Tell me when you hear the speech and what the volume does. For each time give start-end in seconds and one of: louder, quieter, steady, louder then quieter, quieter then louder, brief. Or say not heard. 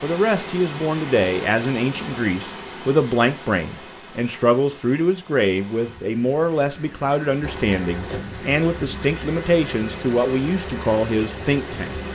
0.0-11.9 steady.